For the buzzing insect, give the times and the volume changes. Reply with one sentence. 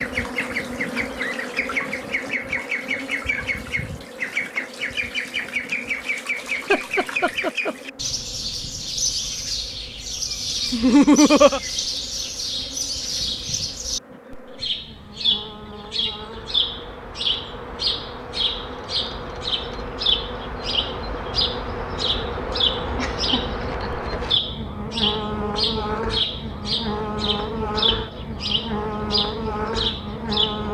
The buzzing insect can be heard from 0.0 to 30.6 s, getting quieter then louder.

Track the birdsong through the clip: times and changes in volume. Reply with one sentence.
The birdsong can be heard from 0.0 to 30.6 s, at a steady volume.